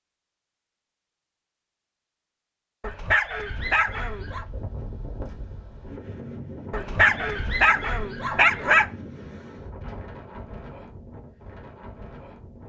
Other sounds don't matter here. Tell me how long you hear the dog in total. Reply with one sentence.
The dog can be heard for 4 seconds in total.